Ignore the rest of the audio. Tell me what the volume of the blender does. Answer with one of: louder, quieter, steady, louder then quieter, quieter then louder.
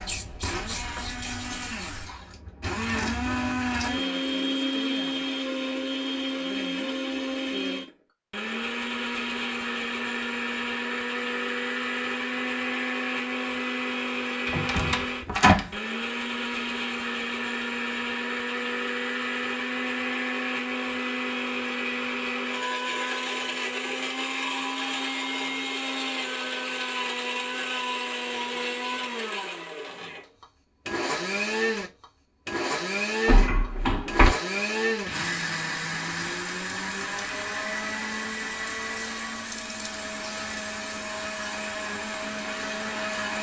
steady.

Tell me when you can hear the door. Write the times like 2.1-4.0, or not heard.
0.8-1.2, 14.4-15.7, 33.2-34.4.